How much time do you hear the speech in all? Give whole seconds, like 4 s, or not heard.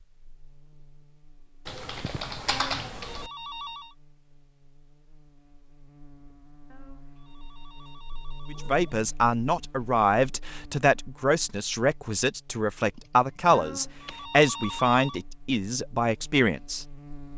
8 s.